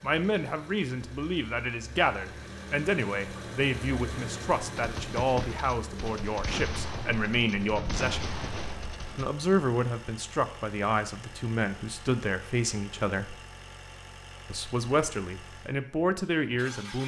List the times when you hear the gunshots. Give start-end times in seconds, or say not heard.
4.8-9.3.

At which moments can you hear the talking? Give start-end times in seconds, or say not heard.
0.0-8.2, 9.2-13.3, 14.5-17.0.